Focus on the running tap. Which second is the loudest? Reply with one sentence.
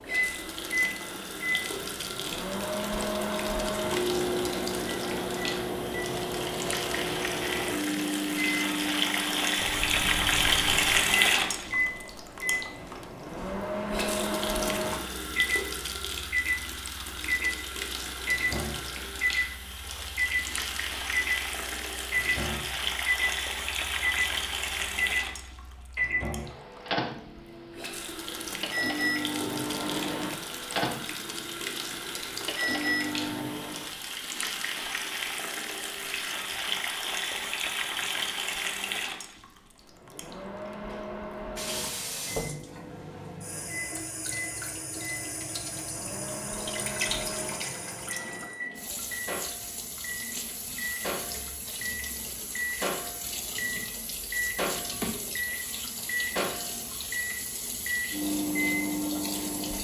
The loudest moment of the running tap is at 11 seconds.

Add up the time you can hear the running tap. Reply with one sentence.
The running tap can be heard for 60 seconds in total.